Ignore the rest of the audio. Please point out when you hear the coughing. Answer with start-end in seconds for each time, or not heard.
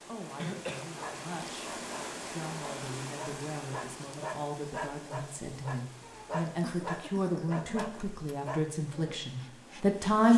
0.3-0.9, 6.0-7.7.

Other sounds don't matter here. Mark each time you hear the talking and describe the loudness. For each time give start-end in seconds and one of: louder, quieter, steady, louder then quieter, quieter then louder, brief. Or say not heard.
0.1-1.7 brief
2.3-10.3 louder.